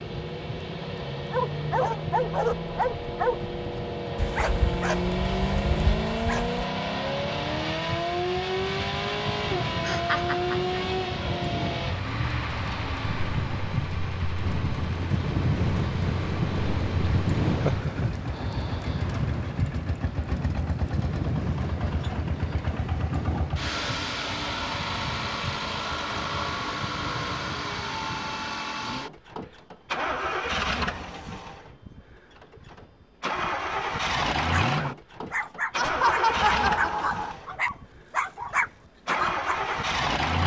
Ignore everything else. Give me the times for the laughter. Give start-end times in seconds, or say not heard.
9.8-10.8, 17.6-18.1, 35.8-37.4.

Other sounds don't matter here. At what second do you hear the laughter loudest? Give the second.
36 s.